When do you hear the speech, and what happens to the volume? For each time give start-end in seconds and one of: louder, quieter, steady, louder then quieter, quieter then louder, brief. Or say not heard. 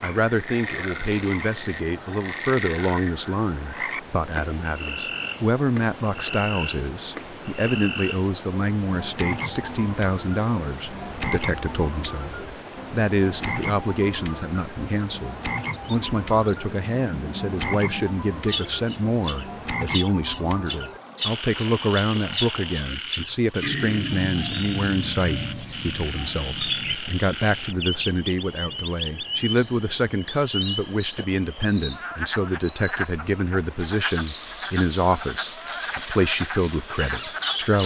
0.0-37.8 steady.